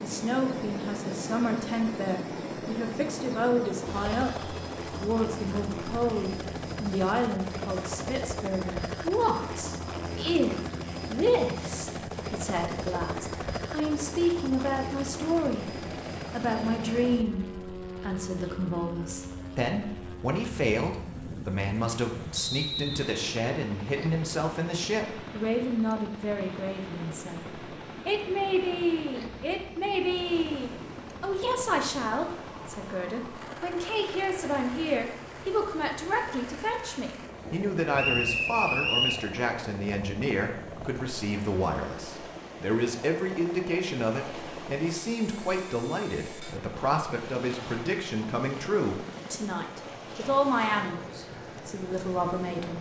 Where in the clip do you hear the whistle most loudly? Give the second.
39 s.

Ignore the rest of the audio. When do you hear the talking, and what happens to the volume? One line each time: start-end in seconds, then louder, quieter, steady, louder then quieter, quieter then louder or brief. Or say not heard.
0.0-52.7 steady.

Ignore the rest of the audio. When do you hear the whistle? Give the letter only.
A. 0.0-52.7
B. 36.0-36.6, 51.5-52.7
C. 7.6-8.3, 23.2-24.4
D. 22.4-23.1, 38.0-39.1
D.